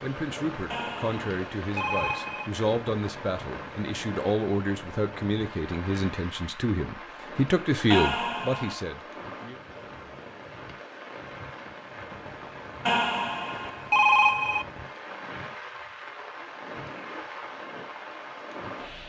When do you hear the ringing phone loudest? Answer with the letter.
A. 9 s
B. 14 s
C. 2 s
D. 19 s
B.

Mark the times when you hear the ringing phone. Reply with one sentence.
You can hear the ringing phone from 0.7 to 2.5 s, from 7.9 to 8.8 s and from 12.8 to 14.7 s.